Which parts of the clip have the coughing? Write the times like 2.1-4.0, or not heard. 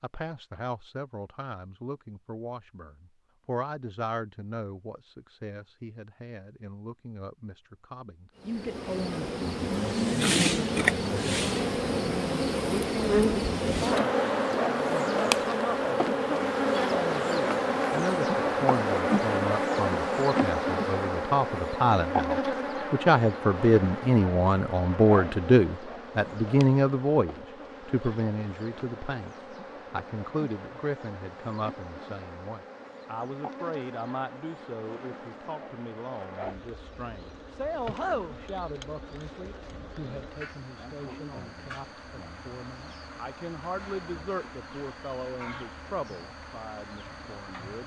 not heard.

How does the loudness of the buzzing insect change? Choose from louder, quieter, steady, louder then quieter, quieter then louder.
quieter.